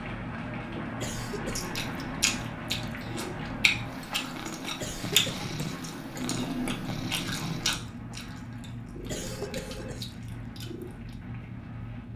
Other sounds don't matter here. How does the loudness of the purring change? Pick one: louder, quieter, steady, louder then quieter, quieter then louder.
steady.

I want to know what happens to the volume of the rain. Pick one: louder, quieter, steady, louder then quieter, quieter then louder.
quieter.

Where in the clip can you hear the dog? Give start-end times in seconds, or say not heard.
not heard.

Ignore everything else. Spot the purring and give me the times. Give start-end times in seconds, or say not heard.
0.0-12.1.